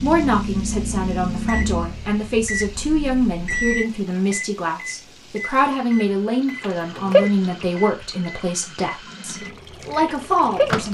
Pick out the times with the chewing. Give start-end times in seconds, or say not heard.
not heard.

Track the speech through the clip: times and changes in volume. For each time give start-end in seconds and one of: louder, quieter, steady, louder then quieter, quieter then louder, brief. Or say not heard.
0.0-10.8 steady.